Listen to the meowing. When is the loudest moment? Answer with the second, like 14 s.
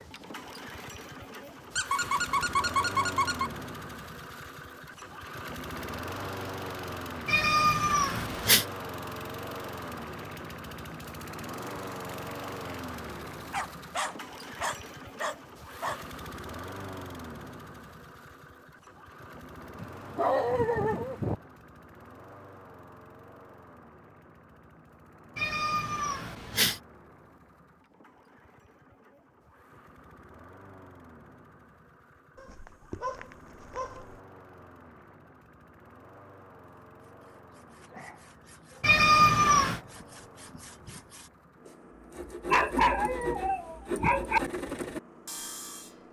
39 s.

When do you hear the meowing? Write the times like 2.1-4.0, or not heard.
7.2-8.7, 25.4-26.8, 38.8-39.8.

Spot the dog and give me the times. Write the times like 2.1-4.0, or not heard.
1.8-3.5, 13.5-16.0, 19.8-21.4, 32.4-34.2, 42.5-44.4.